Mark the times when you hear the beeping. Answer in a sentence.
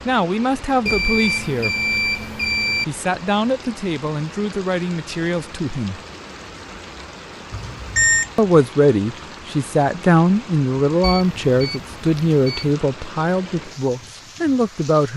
You can hear the beeping from 0.8 to 2.9 s, from 7.5 to 8.3 s and from 11.0 to 12.7 s.